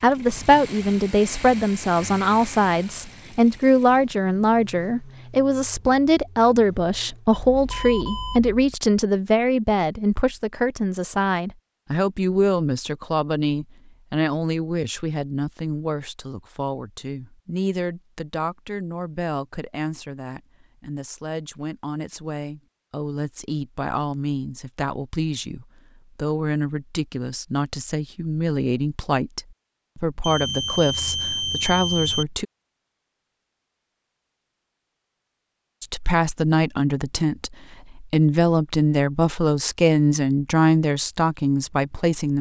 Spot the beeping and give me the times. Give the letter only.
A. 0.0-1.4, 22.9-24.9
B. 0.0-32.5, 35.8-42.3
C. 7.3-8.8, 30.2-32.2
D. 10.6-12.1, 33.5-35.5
C.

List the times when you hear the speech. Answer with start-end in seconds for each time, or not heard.
0.0-32.5, 35.8-42.3.